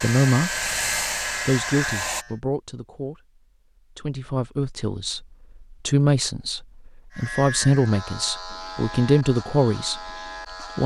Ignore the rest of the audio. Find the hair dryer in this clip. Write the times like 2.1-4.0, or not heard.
0.0-2.2.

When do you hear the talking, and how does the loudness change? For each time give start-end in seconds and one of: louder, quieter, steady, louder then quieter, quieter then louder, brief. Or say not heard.
0.0-0.7 brief
1.4-10.1 louder.